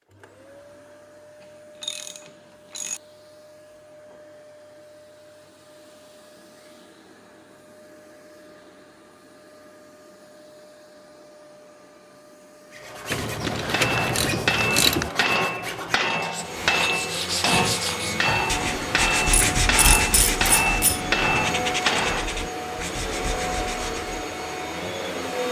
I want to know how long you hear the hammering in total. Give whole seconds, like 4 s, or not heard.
9 s.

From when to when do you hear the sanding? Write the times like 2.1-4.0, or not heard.
12.7-24.2.